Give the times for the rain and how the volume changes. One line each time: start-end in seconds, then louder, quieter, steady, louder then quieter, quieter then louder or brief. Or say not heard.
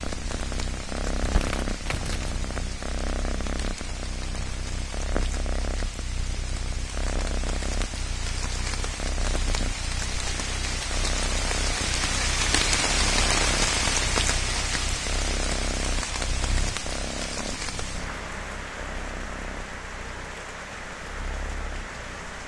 0.0-22.4 louder then quieter.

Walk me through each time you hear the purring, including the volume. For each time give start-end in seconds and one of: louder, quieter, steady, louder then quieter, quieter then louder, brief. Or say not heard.
0.0-22.4 quieter.